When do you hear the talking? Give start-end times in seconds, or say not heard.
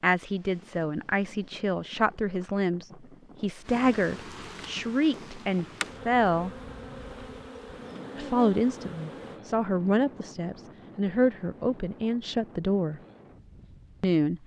0.0-6.5, 8.2-13.0, 14.0-14.4.